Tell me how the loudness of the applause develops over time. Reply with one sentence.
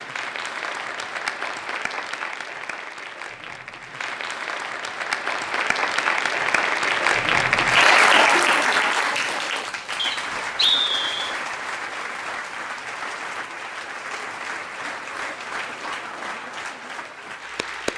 The volume of the applause goes up, then down.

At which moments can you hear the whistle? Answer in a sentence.
The whistle can be heard from 9.9 to 11.3 s.